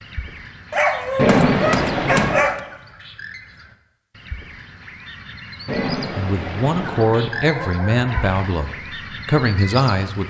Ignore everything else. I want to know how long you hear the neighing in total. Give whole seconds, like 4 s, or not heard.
3 s.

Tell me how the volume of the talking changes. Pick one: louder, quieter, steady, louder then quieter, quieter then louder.
quieter then louder.